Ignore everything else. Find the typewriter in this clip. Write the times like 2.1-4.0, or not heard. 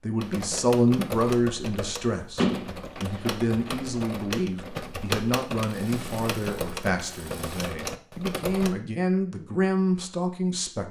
0.2-8.8.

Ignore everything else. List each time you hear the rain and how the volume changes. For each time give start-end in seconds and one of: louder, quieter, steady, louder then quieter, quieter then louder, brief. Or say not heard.
not heard.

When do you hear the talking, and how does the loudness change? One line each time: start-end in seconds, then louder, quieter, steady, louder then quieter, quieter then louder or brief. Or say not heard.
0.0-10.8 quieter then louder.